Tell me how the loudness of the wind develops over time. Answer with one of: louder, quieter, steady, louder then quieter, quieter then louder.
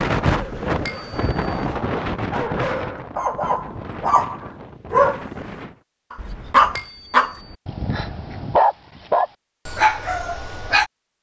quieter.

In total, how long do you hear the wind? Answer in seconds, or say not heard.
6 s.